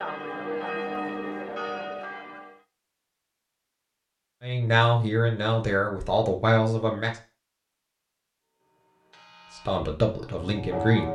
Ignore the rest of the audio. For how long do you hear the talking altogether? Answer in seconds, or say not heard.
4 s.